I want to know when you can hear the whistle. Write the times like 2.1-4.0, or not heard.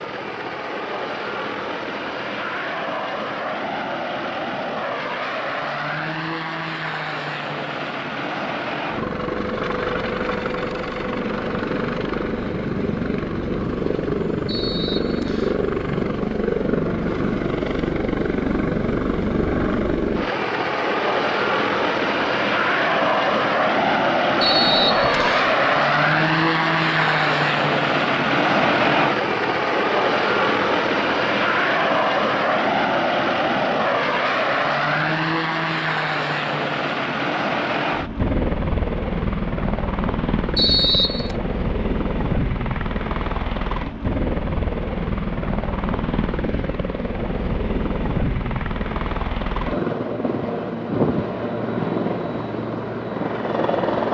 14.4-15.6, 24.4-25.6, 40.5-41.4.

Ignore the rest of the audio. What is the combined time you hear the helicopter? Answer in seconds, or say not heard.
54 s.